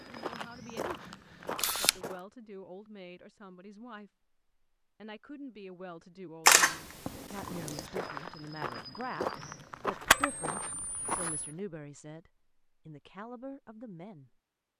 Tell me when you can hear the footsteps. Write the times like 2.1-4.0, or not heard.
0.0-2.2, 7.7-11.6.